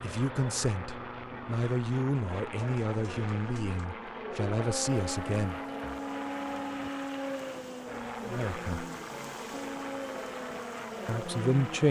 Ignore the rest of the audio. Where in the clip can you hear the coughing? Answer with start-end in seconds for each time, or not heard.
not heard.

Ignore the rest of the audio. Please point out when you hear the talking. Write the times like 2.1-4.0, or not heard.
0.0-5.6, 8.2-8.8, 11.1-11.8.